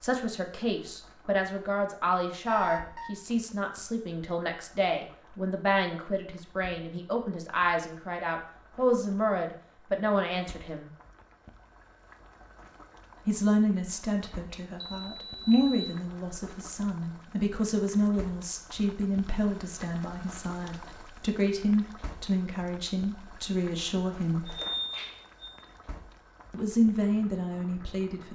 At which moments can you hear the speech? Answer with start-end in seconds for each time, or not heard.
0.0-10.9, 13.2-24.6, 26.5-28.3.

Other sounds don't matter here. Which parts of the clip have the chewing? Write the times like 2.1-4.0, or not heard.
not heard.